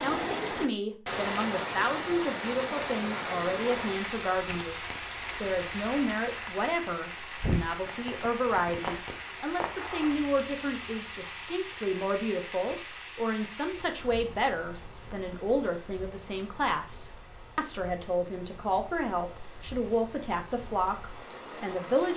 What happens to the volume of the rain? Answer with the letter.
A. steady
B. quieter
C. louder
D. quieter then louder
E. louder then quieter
B.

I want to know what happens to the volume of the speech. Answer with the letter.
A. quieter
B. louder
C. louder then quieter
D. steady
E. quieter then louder
D.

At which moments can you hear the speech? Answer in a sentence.
You can hear the speech from 0.0 to 22.1 s.